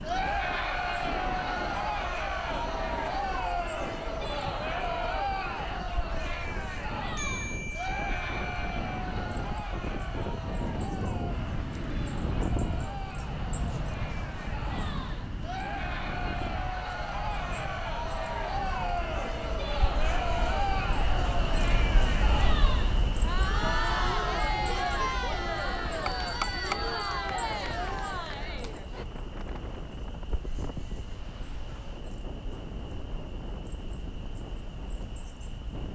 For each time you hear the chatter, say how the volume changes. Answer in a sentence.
The chatter can be heard from 0.0 to 29.1 s, getting quieter then louder.